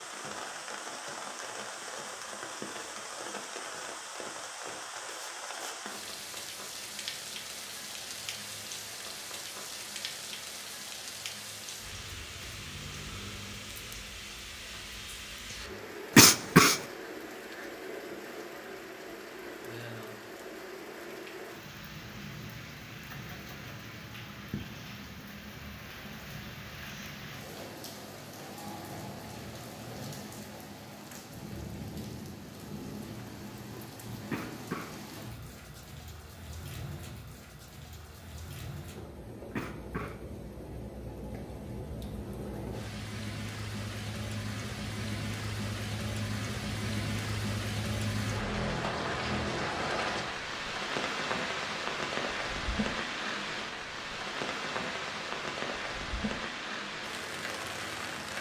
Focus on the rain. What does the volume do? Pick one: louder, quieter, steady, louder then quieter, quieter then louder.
louder.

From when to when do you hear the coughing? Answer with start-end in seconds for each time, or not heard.
16.1-16.8, 34.3-35.0, 39.5-40.2.